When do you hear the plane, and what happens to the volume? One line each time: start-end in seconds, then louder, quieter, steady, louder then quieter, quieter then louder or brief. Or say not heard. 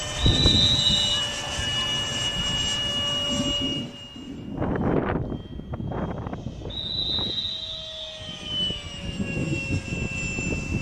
0.0-10.7 quieter then louder.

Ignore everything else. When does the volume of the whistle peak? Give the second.
1 s.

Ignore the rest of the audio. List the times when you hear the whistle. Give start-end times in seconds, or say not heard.
0.1-1.2, 6.7-8.2.